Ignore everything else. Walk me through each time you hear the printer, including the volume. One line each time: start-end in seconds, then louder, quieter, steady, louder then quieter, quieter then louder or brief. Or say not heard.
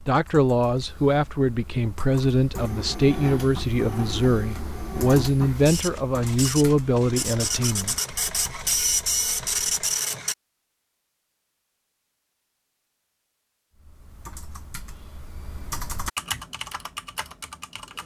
2.5-10.3 louder.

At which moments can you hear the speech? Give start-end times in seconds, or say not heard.
0.1-8.0.